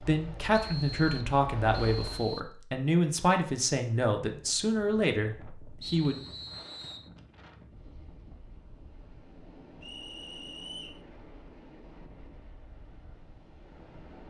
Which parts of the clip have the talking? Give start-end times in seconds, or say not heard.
0.0-6.2.